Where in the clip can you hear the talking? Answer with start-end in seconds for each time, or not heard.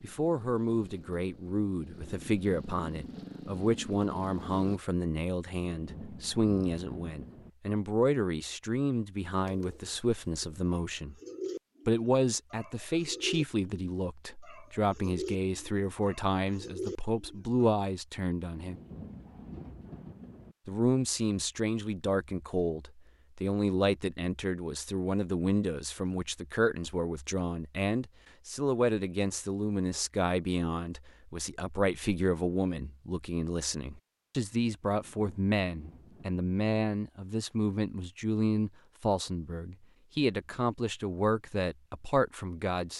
0.0-11.2, 11.8-18.8, 20.6-42.9.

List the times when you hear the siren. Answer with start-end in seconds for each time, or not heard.
not heard.